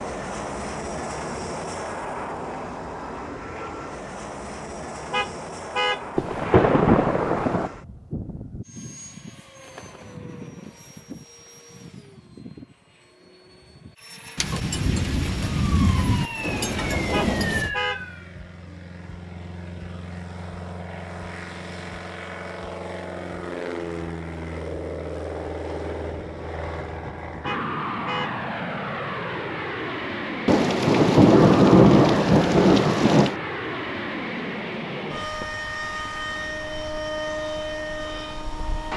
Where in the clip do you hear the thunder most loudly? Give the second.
32 s.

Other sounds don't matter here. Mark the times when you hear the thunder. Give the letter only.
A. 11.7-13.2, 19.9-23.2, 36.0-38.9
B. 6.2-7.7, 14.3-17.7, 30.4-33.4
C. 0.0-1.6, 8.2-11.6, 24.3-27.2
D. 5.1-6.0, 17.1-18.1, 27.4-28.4
B.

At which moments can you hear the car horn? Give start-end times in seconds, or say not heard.
5.1-6.0, 17.1-18.1, 27.4-28.4.